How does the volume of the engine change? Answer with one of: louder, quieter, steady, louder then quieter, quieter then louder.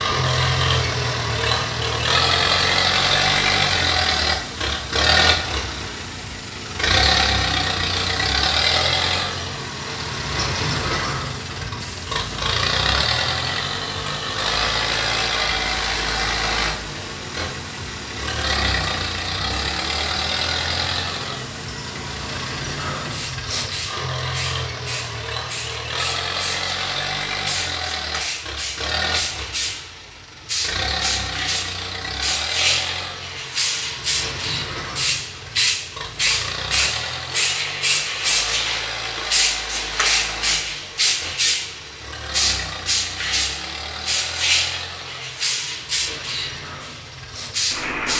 quieter.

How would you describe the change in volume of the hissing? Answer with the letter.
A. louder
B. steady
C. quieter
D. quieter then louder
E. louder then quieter
A.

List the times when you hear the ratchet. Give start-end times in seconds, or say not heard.
not heard.